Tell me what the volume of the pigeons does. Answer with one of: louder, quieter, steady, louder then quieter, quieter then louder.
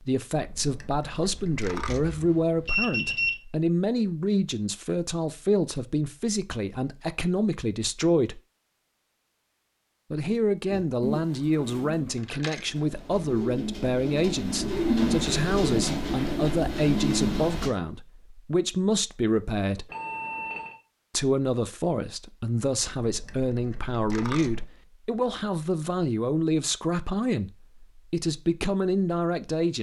louder.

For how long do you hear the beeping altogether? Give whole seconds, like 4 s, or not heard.
2 s.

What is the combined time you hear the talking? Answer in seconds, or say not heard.
27 s.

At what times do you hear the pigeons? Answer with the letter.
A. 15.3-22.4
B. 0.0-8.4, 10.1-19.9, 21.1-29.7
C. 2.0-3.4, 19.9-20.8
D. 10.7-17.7
D.